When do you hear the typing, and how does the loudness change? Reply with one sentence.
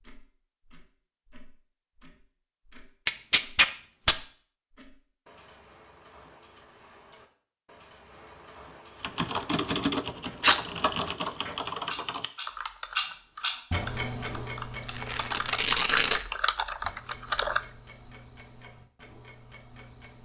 You can hear the typing from 9.0 to 18.1 s, getting quieter then louder.